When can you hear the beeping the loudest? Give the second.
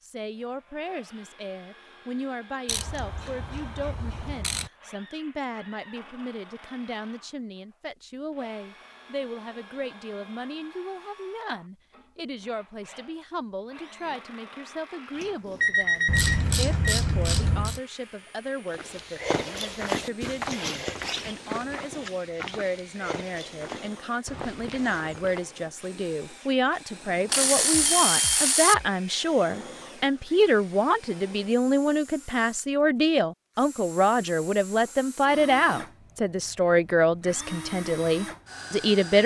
16 s.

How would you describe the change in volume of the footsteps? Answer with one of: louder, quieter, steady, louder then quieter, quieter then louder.
quieter.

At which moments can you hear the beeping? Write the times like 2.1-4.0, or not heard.
15.2-16.9, 27.7-28.9.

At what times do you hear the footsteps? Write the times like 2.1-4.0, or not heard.
18.6-25.5.